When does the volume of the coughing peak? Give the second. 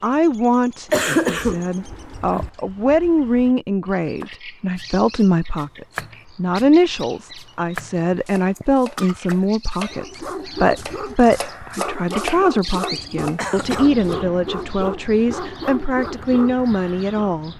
1 s.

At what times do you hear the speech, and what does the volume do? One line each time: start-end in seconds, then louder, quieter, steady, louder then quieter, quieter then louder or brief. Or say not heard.
0.0-17.5 steady.